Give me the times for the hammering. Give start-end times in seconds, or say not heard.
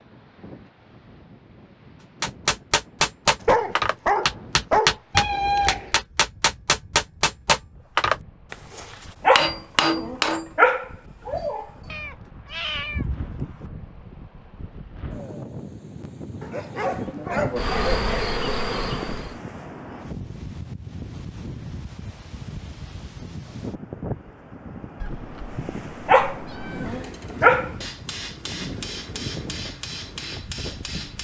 2.2-10.5, 26.9-31.1.